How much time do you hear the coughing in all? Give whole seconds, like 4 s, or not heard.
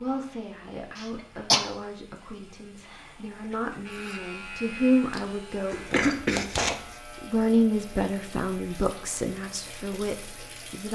2 s.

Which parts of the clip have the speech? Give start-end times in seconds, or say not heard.
0.0-10.9.